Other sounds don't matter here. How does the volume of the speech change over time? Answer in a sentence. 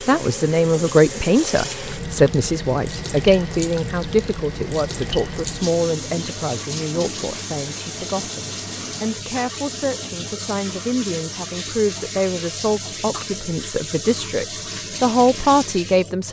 The volume of the speech goes down, then up.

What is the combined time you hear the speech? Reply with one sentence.
The speech can be heard for 16 seconds in total.